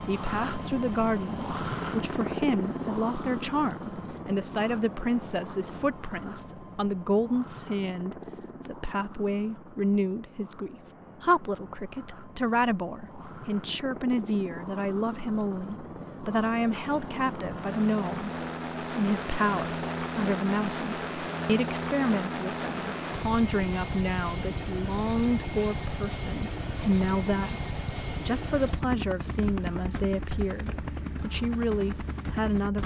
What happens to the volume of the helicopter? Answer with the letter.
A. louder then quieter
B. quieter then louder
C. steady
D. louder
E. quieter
B.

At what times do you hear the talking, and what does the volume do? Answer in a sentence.
You can hear the talking from 0.1 to 32.8 s, at a steady volume.